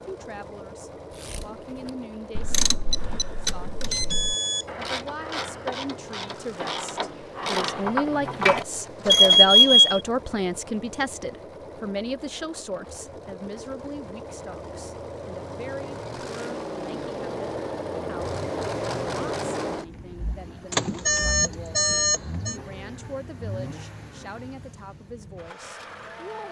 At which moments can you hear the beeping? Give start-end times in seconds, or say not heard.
2.9-4.7, 9.1-10.0, 20.7-22.6.